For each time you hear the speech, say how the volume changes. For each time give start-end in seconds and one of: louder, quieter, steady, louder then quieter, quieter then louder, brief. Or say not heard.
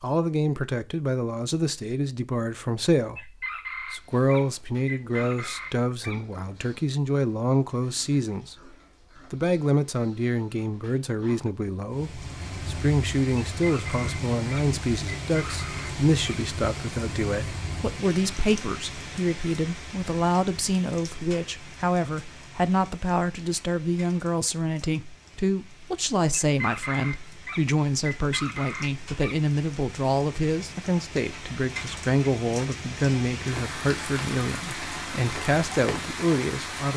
0.0-36.9 steady.